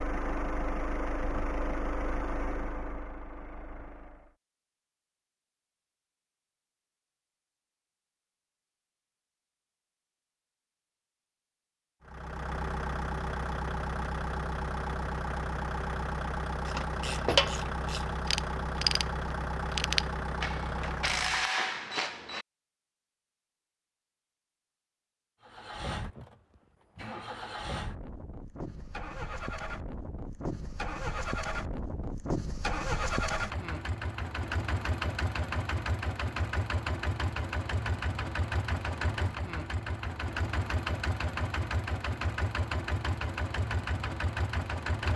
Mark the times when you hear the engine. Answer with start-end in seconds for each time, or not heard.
0.0-4.3, 12.1-21.4, 25.4-45.1.